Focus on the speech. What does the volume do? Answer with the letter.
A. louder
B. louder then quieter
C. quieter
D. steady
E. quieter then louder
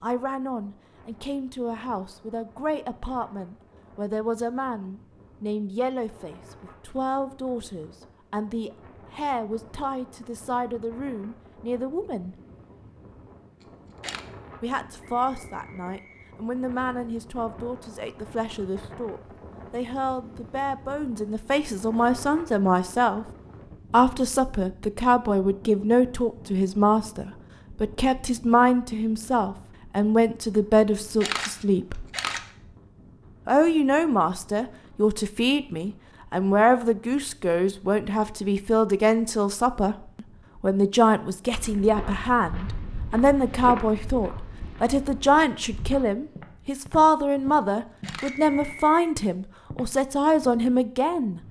A.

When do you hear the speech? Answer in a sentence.
The speech can be heard from 0.0 to 12.3 s, from 14.6 to 23.2 s, from 23.9 to 32.0 s and from 33.5 to 51.4 s.